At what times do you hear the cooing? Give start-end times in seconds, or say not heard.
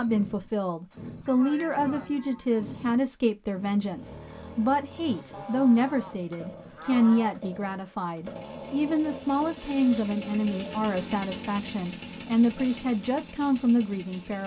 not heard.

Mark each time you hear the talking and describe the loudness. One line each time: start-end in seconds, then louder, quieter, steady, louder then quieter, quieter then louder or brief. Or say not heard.
0.0-14.4 steady.